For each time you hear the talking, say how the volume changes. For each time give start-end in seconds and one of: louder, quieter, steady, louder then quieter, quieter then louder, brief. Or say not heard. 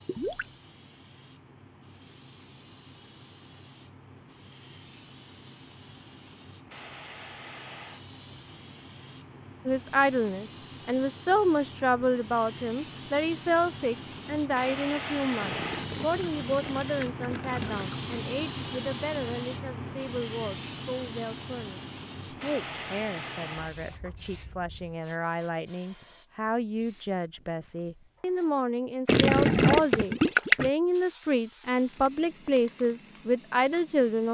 9.7-34.3 quieter then louder.